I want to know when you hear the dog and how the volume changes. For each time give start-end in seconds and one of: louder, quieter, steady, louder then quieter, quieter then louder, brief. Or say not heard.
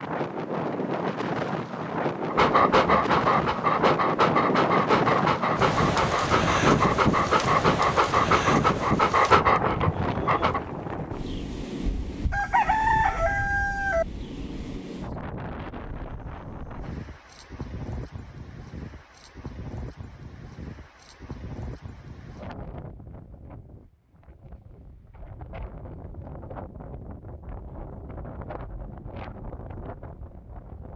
2.2-10.6 steady.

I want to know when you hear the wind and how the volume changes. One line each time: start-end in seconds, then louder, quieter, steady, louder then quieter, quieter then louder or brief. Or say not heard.
0.0-30.9 quieter.